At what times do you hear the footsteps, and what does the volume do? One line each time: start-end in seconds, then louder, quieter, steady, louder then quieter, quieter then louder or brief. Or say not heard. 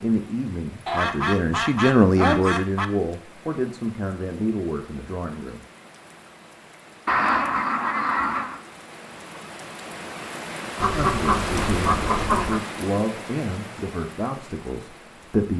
not heard.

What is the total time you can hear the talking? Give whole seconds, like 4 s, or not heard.
10 s.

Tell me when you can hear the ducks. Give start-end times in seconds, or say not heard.
0.8-2.9, 7.0-8.6, 10.8-12.6.